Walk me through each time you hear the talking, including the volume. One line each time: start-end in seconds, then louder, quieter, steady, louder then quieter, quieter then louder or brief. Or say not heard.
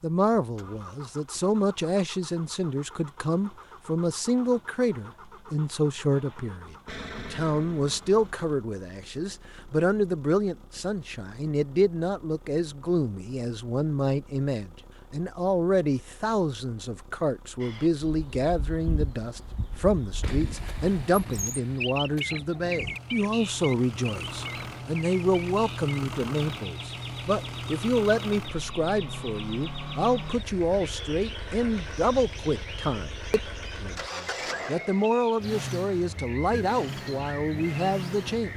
0.0-38.5 steady.